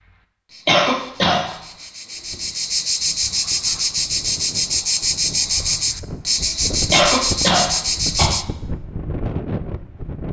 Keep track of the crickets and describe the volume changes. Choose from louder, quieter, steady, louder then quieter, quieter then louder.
louder.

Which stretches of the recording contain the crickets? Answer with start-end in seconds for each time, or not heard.
0.0-8.4.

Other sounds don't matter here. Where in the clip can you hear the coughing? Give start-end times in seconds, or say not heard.
0.7-1.6, 6.9-8.4.